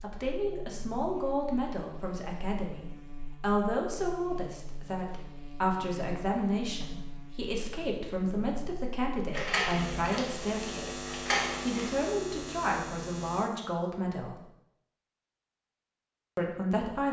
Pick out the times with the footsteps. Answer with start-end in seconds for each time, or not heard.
not heard.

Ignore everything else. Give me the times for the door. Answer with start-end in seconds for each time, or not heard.
9.3-11.9.